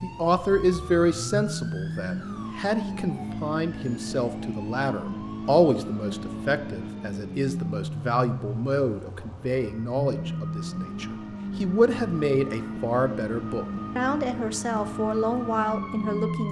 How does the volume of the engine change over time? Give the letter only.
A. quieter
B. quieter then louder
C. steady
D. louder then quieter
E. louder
C.